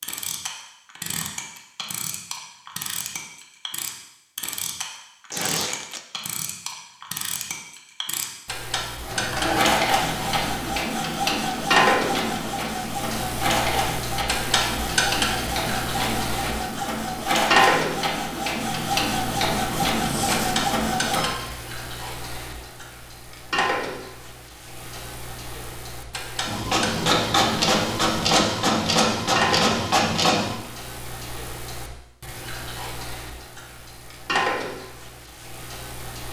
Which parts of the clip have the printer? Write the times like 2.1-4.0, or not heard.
9.0-21.4, 26.4-30.6.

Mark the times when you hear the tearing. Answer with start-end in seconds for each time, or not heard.
5.3-6.0, 19.9-20.6.